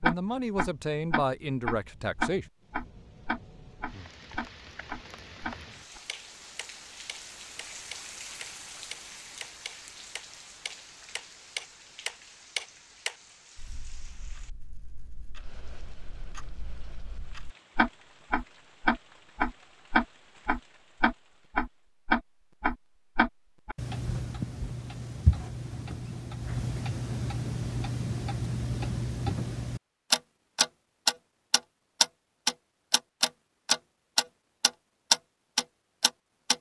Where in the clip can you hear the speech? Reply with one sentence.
The speech can be heard from 0.0 to 2.5 s.